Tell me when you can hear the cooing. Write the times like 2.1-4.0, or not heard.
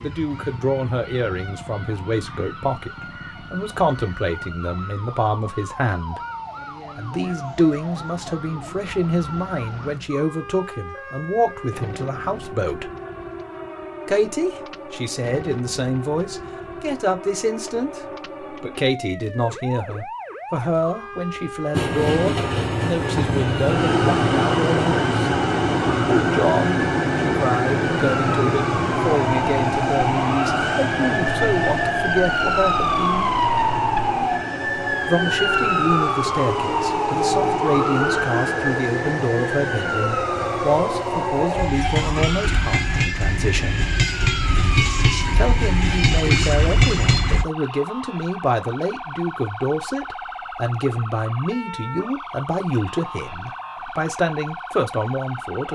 not heard.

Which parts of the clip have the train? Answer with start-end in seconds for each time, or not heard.
21.8-47.5.